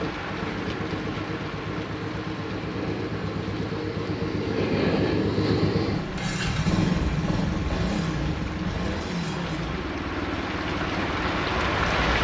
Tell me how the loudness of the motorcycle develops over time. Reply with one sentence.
The loudness of the motorcycle goes up, then down.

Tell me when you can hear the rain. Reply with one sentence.
You can hear the rain from 0.0 to 12.1 s.